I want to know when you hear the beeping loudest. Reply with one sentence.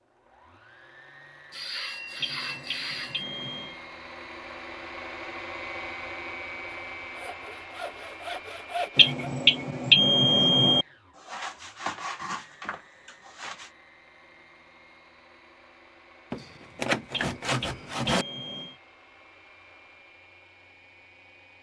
The loudest moment of the beeping is at 10 seconds.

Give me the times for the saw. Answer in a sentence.
You can hear the saw from 1.5 to 3.2 s, from 6.7 to 9.3 s, from 11.2 to 13.7 s and from 16.3 to 18.2 s.